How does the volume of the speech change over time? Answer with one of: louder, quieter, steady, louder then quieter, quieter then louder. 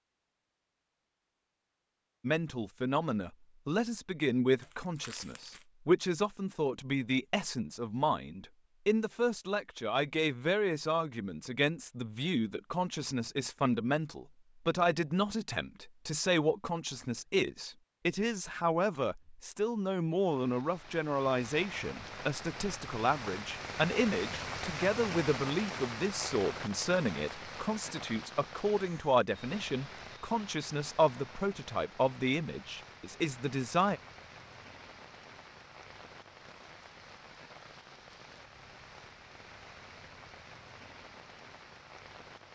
steady.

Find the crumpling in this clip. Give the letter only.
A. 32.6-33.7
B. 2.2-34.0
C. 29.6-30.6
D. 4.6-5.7
D.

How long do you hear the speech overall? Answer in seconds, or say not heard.
32 s.